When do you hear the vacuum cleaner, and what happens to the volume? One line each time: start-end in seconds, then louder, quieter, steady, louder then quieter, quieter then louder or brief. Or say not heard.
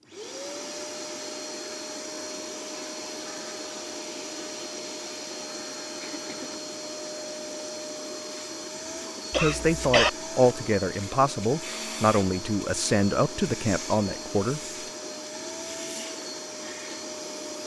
0.0-17.6 steady.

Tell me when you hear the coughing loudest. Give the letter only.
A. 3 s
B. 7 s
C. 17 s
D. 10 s
D.